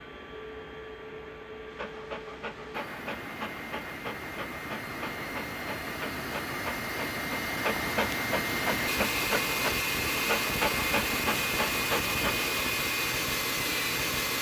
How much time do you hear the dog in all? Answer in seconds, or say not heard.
11 s.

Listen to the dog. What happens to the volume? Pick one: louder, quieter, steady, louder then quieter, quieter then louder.
louder.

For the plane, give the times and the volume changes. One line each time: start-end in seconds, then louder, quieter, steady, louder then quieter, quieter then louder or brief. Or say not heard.
0.0-14.3 louder.